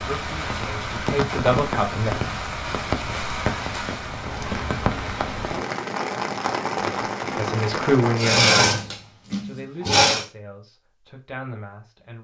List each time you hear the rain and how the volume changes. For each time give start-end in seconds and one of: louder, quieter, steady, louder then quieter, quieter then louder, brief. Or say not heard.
0.0-8.2 steady.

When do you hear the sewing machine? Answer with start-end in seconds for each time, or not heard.
8.2-10.2.